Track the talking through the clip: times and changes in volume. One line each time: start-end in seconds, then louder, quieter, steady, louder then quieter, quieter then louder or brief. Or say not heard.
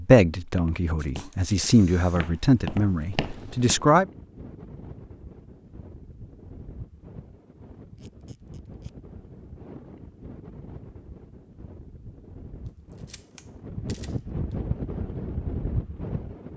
0.0-4.0 louder then quieter.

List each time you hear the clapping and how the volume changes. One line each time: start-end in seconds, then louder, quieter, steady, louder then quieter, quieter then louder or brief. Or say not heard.
not heard.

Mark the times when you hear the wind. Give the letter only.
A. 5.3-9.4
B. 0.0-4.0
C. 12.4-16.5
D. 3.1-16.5
D.